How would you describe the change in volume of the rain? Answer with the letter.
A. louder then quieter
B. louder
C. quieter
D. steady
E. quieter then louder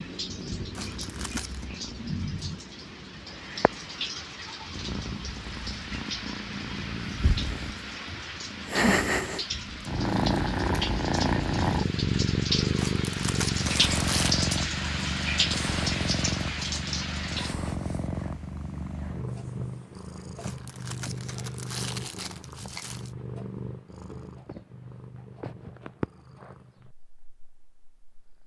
B.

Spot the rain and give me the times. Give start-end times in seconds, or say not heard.
0.0-17.6.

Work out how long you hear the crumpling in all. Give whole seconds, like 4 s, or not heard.
5 s.